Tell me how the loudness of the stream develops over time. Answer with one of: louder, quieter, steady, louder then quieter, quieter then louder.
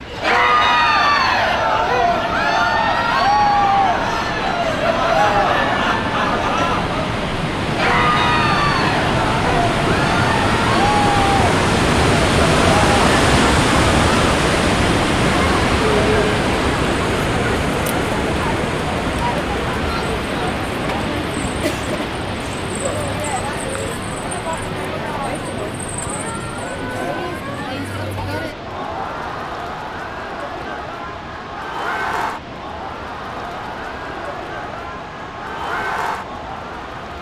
louder then quieter.